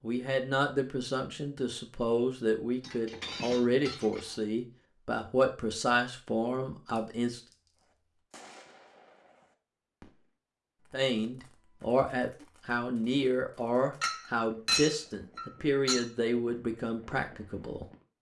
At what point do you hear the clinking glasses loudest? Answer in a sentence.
The loudest moment of the clinking glasses is at 15 seconds.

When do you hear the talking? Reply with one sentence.
The talking can be heard from 0.0 to 7.4 s and from 10.9 to 17.9 s.